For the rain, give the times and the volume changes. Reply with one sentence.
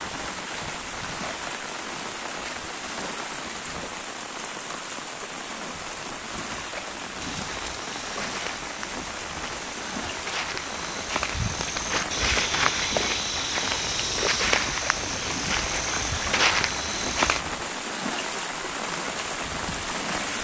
The rain can be heard from 0.0 to 20.3 s, at a steady volume.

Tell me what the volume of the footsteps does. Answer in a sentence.
The loudness of the footsteps goes up.